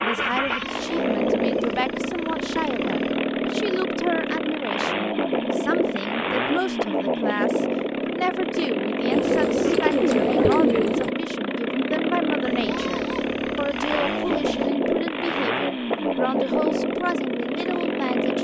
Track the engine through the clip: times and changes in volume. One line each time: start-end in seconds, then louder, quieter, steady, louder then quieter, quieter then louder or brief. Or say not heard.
0.0-18.3 steady.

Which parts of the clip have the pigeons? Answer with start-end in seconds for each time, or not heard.
9.1-11.1.